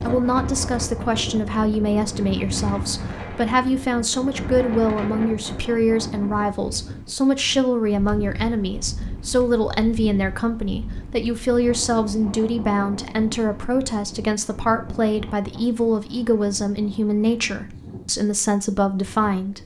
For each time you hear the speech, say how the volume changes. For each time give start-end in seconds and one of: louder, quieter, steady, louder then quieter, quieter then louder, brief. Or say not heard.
0.0-19.6 steady.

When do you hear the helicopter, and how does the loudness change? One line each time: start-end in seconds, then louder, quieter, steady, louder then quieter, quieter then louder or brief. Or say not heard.
not heard.